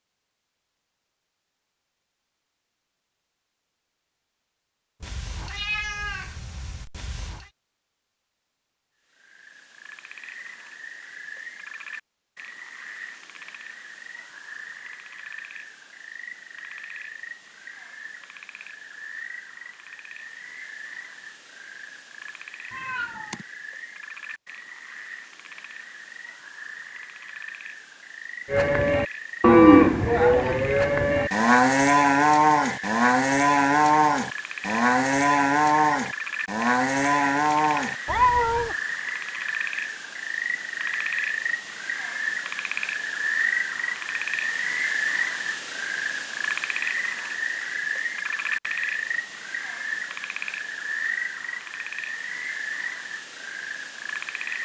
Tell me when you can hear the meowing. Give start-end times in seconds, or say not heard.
5.0-7.5, 22.7-23.4, 38.0-38.8.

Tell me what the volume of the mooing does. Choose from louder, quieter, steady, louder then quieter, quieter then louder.
quieter.